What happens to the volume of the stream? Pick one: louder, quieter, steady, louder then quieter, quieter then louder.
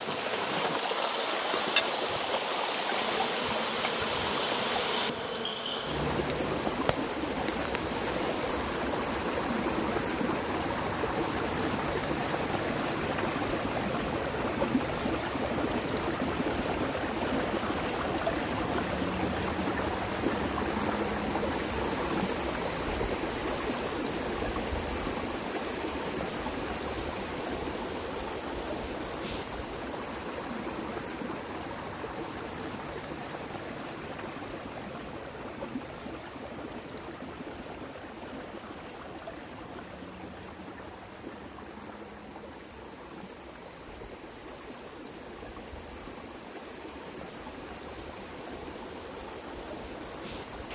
quieter.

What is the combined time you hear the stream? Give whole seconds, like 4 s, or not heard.
51 s.